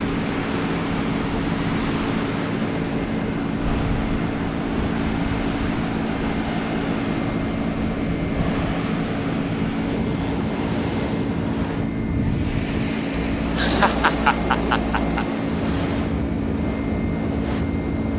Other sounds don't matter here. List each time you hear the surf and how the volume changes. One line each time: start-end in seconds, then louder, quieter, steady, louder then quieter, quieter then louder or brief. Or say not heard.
0.0-18.1 steady.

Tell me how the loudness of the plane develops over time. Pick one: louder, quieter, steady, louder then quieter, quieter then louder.
steady.